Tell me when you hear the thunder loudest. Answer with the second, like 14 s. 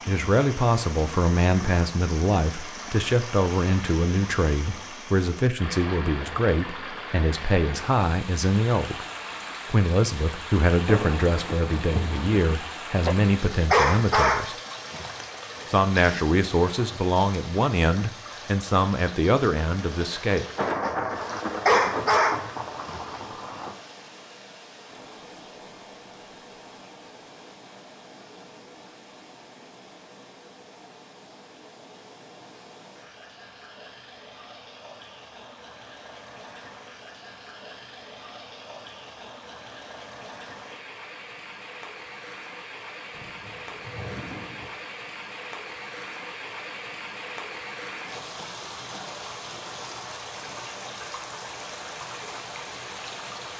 21 s.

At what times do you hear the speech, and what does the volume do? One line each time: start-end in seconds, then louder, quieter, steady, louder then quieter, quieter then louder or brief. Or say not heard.
0.1-9.1 steady
9.7-14.6 steady
15.7-20.4 steady.